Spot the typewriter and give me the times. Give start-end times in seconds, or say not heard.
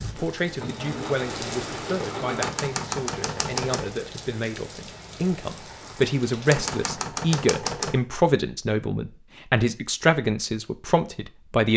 2.4-4.0, 6.5-8.0.